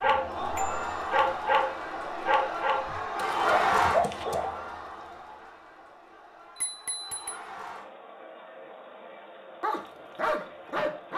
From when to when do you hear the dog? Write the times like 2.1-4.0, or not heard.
0.0-4.5, 9.6-11.1.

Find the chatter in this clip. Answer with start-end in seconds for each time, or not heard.
0.0-11.1.